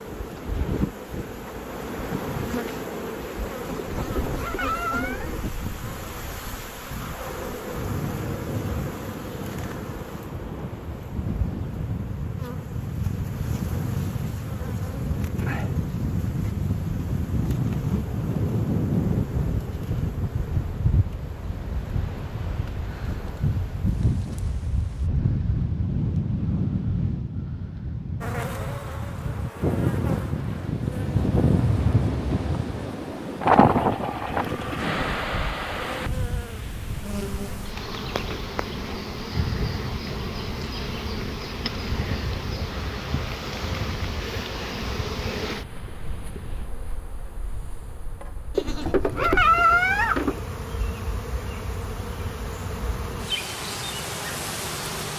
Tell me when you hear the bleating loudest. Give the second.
50 s.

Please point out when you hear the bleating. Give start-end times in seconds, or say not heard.
4.0-5.3, 48.5-50.4.